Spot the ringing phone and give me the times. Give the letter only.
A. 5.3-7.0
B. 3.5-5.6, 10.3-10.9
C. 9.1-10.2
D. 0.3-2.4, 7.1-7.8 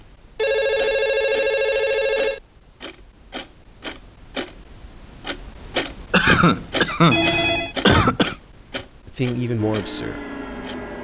D.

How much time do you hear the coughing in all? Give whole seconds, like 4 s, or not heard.
3 s.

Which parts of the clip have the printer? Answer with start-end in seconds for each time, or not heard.
9.2-10.9.